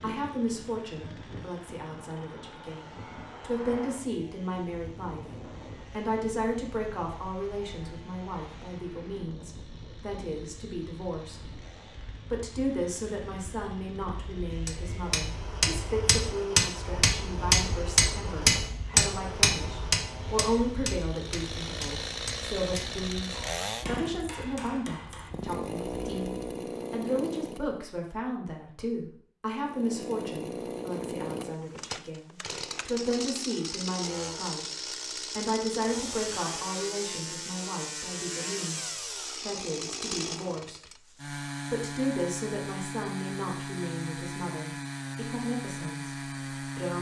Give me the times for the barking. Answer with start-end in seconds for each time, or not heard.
not heard.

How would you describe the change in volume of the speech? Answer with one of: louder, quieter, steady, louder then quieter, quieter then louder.
steady.